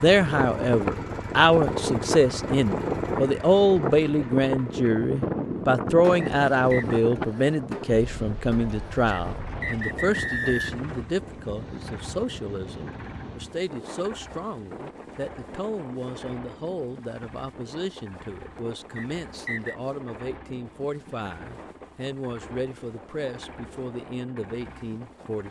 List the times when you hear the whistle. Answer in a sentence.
The whistle can be heard from 6.2 to 7.0 s, from 9.1 to 10.7 s and from 18.9 to 19.8 s.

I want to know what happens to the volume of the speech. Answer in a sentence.
The volume of the speech goes down.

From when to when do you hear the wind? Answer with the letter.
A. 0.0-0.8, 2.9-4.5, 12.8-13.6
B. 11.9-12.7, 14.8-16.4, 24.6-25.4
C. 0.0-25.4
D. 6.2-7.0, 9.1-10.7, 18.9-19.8
C.